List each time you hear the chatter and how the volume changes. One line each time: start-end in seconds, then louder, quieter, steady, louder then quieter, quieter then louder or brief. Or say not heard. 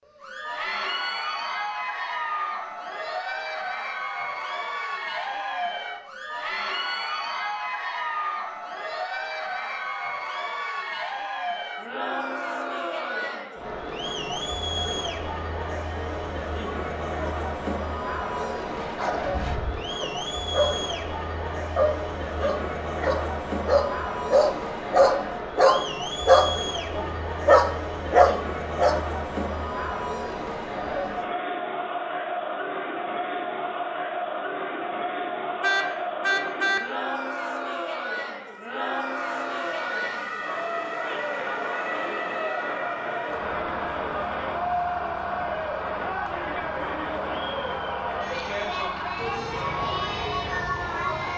0.1-51.3 steady.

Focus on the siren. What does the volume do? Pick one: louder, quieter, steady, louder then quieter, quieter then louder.
steady.